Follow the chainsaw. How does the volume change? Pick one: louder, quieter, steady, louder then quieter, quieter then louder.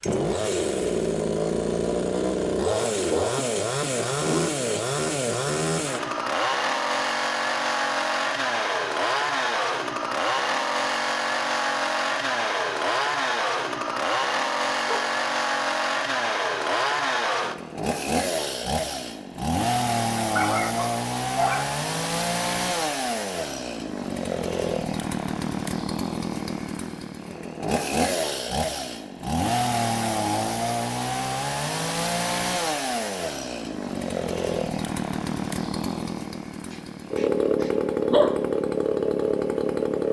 steady.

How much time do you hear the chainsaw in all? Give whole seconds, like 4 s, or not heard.
40 s.